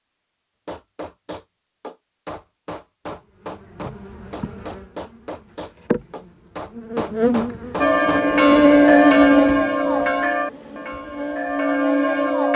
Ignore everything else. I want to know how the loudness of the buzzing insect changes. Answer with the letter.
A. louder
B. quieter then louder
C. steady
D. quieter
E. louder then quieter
E.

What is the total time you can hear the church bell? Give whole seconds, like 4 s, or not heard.
5 s.